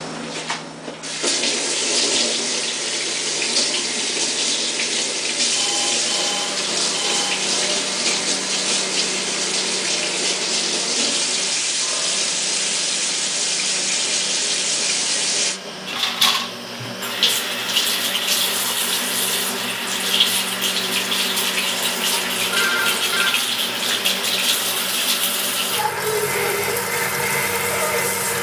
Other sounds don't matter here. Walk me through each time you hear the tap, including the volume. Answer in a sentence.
The tap can be heard from 0.0 to 28.3 s, at a steady volume.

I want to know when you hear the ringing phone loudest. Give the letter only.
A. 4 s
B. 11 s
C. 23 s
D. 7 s
C.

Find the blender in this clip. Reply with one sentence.
You can hear the blender from 6.1 to 28.3 s.